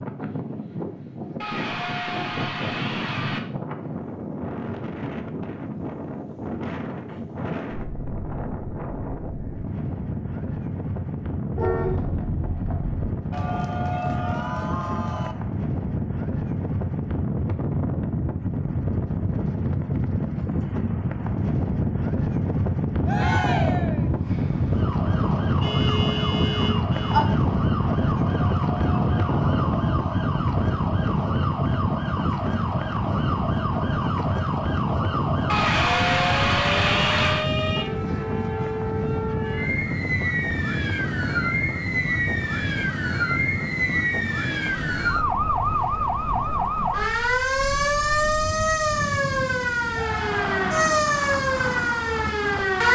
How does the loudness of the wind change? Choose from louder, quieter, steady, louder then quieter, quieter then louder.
louder then quieter.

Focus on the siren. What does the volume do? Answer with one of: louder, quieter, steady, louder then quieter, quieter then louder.
louder.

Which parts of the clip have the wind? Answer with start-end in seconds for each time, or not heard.
0.0-52.8.